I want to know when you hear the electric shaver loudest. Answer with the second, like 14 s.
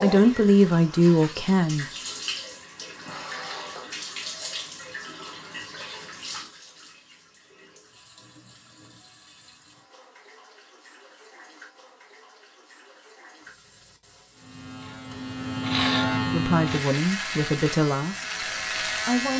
16 s.